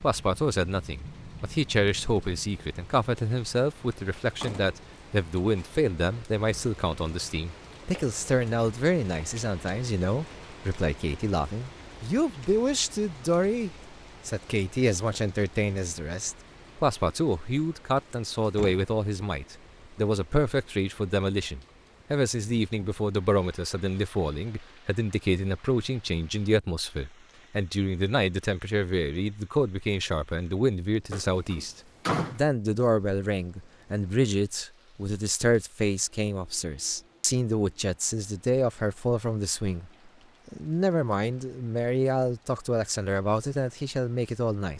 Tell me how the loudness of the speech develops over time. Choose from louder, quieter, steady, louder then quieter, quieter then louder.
steady.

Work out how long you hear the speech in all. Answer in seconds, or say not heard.
45 s.